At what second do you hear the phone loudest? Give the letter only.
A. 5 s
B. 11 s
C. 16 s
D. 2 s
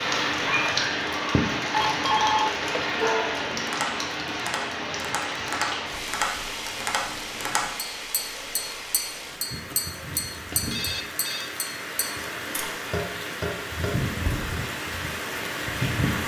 D.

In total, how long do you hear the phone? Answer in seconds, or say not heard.
3 s.